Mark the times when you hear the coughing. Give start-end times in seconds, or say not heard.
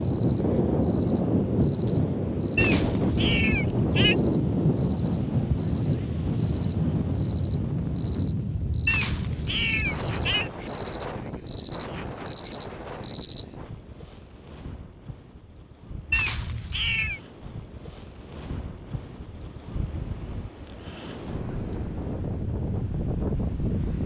not heard.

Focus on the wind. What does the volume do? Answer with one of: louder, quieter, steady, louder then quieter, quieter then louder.
quieter then louder.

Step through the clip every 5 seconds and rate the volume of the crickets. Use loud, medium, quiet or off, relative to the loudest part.
quiet, medium, loud, off, off.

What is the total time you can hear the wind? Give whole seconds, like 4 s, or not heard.
24 s.